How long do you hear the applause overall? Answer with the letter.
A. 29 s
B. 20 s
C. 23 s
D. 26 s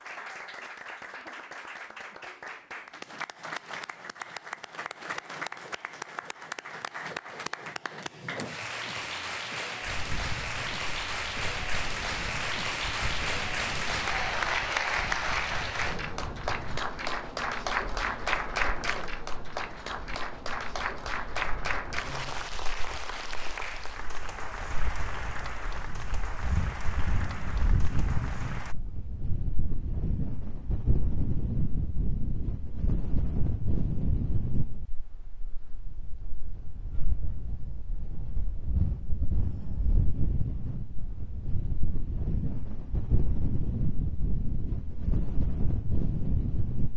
A.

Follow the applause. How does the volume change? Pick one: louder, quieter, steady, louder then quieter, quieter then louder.
louder then quieter.